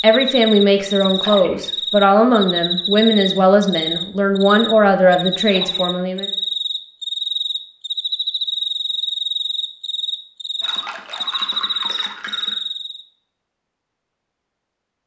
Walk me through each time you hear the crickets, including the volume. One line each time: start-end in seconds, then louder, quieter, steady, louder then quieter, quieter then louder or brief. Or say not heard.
0.0-13.1 steady.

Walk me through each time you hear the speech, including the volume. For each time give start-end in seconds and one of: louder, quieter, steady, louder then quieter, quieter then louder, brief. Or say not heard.
0.0-6.3 steady.